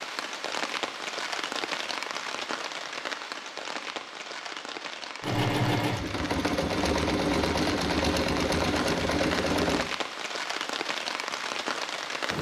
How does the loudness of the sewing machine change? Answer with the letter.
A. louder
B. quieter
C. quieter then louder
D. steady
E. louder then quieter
D.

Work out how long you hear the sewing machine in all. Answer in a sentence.
You can hear the sewing machine for 5 seconds altogether.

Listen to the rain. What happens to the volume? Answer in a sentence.
The loudness of the rain goes down, then up.